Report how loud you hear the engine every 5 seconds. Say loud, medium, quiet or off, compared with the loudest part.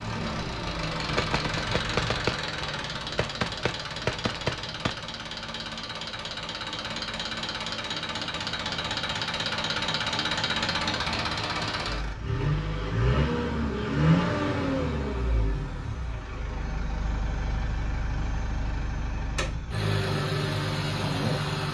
medium, medium, loud, medium, loud.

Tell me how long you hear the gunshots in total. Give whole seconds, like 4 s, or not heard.
4 s.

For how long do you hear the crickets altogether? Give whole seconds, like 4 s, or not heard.
not heard.